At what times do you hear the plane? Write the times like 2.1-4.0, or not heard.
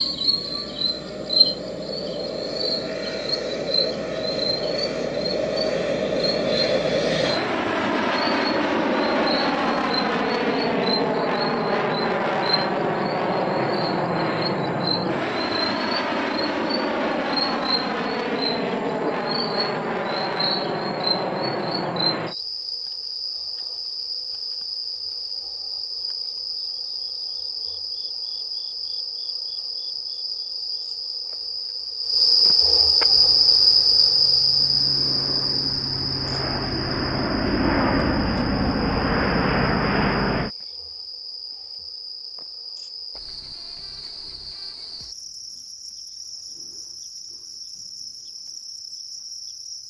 0.0-22.4, 33.0-40.5.